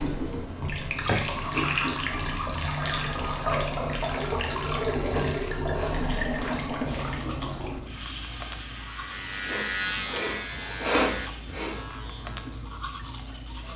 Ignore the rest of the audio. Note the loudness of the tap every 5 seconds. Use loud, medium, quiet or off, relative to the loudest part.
loud, loud, quiet.